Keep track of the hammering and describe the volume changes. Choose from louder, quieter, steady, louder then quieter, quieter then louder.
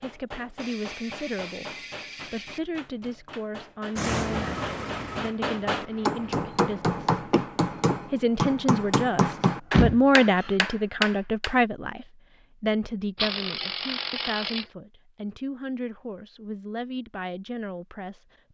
louder.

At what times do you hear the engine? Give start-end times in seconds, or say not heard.
4.0-6.5.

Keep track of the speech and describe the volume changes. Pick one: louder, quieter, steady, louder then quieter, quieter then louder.
louder then quieter.